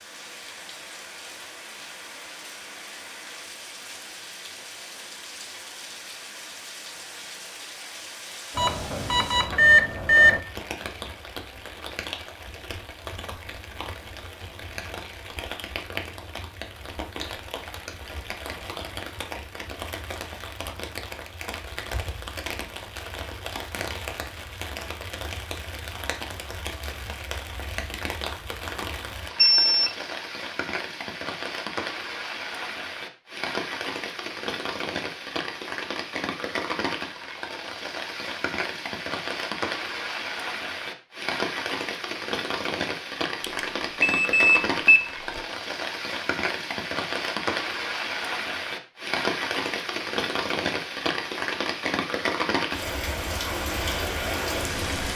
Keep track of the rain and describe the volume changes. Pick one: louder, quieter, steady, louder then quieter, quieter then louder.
louder.